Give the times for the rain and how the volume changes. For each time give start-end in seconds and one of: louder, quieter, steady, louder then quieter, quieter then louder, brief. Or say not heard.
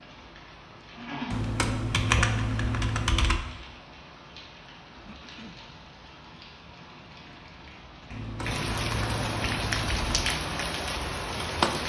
0.0-11.8 quieter then louder.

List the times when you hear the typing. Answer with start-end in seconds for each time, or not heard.
1.3-3.5, 8.1-10.2.